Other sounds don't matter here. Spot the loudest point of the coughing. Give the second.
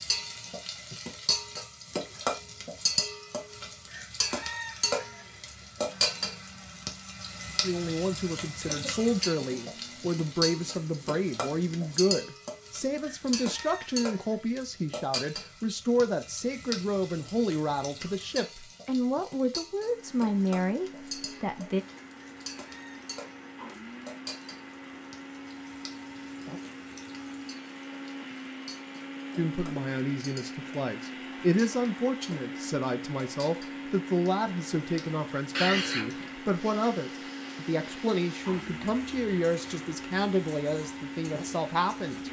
36 s.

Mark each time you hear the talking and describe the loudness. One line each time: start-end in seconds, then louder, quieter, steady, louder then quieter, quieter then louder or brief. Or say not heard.
7.6-21.9 steady
29.4-42.2 steady.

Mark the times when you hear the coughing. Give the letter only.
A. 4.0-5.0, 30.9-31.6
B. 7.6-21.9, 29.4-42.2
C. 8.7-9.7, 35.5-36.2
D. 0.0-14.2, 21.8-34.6
C.